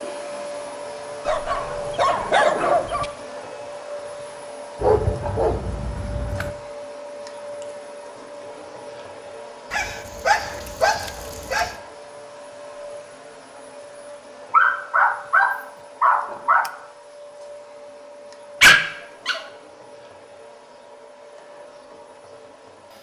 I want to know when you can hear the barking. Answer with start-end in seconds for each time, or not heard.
1.2-3.0, 4.8-6.5, 9.7-11.8, 14.5-16.7, 18.6-19.4.